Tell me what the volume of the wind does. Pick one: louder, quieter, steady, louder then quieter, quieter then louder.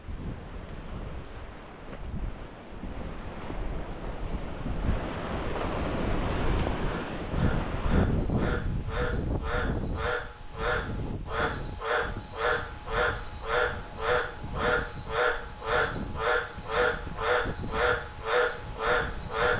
louder then quieter.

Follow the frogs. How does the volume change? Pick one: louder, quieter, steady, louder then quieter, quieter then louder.
louder.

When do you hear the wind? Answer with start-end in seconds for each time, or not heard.
0.0-19.5.